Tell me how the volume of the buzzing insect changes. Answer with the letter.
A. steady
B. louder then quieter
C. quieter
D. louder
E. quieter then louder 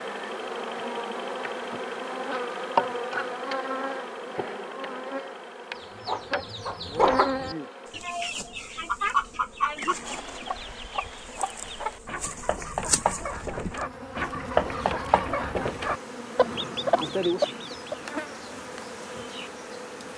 E.